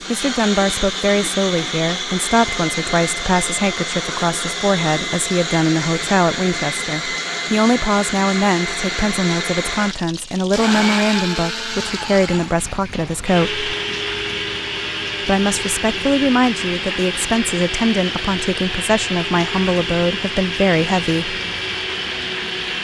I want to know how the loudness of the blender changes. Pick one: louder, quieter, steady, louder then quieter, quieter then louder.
steady.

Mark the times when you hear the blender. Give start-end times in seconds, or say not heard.
0.0-22.7.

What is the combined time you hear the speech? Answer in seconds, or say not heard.
20 s.